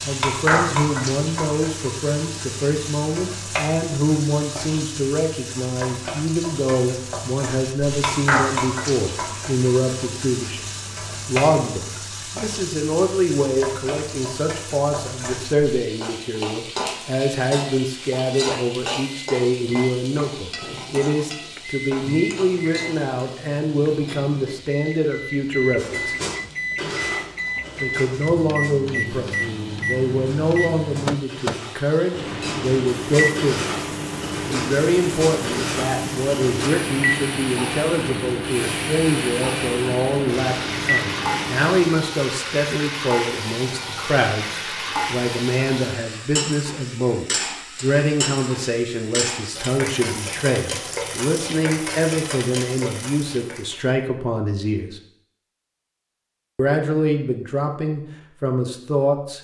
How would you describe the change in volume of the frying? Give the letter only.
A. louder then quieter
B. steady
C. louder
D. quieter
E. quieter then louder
E.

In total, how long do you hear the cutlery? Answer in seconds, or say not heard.
11 s.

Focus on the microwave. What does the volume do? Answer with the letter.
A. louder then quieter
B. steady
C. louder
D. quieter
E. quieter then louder
C.